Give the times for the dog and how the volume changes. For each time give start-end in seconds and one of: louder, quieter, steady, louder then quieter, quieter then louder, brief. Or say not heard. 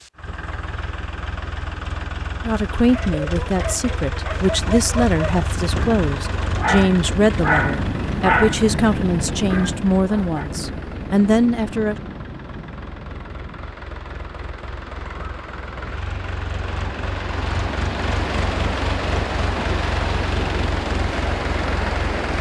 2.9-10.4 louder then quieter.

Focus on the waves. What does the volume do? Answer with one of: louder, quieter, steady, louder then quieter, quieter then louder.
quieter then louder.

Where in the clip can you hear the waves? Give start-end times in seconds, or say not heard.
4.3-22.3.